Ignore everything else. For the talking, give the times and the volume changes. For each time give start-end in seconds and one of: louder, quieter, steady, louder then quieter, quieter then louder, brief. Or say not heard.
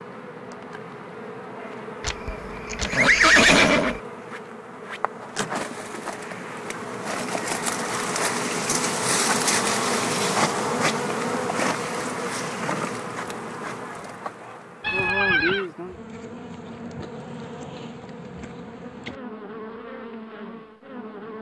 not heard.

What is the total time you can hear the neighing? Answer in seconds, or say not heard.
3 s.